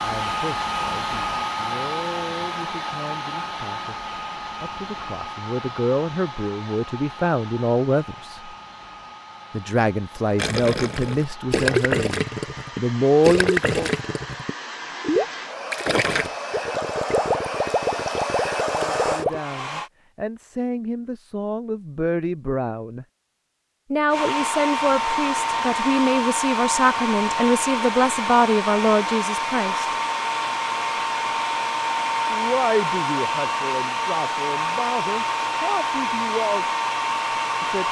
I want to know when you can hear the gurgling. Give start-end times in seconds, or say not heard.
10.3-19.4.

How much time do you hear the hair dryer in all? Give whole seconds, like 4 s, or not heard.
34 s.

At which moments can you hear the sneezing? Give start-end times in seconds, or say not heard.
not heard.